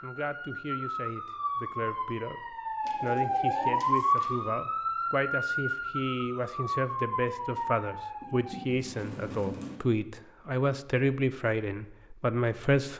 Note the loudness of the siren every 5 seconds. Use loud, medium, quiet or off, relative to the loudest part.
loud, loud, off.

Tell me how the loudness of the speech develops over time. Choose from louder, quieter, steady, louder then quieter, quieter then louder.
louder.